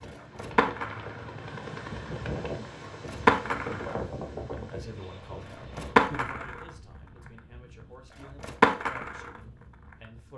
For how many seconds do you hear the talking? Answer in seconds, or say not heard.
6 s.